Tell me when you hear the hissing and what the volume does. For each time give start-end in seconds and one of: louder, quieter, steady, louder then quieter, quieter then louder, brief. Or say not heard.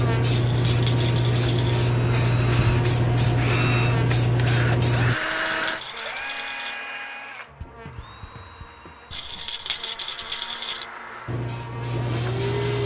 0.0-5.2 steady
11.2-12.8 brief.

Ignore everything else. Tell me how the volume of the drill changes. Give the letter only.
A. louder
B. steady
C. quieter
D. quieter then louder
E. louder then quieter
D.